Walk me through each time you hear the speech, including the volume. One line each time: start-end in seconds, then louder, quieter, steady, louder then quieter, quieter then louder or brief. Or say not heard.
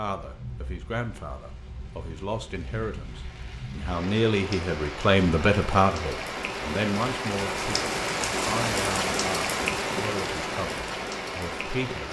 0.0-12.0 louder then quieter.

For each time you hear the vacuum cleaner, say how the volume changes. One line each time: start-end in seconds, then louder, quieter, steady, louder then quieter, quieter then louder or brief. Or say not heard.
not heard.